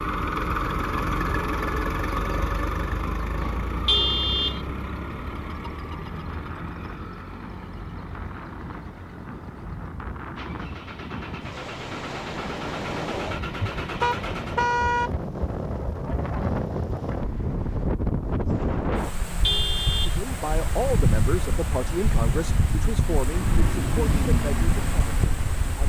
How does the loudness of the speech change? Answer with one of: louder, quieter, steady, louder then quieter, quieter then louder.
quieter.